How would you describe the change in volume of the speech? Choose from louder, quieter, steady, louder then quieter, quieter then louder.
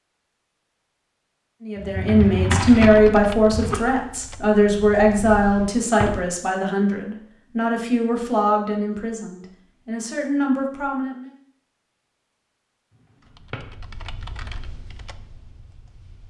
quieter.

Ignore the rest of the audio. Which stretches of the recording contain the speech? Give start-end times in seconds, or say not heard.
1.6-11.3.